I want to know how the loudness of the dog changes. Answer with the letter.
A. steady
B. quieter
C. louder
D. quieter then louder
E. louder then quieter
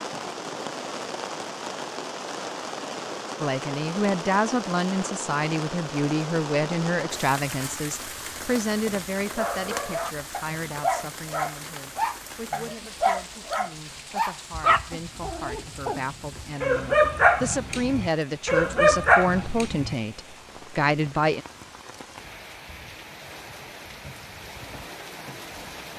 C.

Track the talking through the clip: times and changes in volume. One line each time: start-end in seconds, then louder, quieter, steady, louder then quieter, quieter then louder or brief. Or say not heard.
3.4-21.4 quieter then louder.